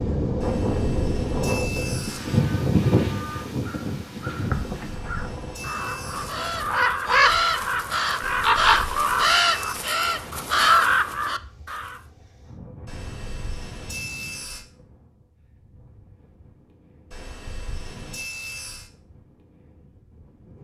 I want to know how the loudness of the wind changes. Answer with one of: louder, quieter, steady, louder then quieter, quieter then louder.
quieter.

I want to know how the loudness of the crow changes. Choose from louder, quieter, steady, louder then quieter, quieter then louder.
louder.